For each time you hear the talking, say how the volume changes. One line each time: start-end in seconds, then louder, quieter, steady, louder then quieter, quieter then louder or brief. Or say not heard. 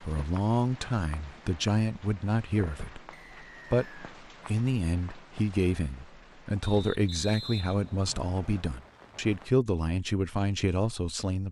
0.0-11.4 steady.